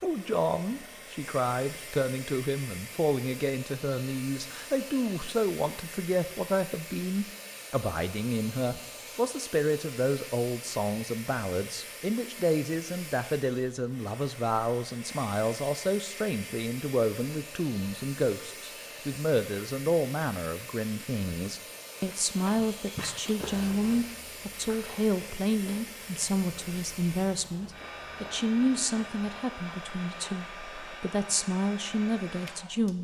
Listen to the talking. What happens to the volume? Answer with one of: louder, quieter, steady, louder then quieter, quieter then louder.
steady.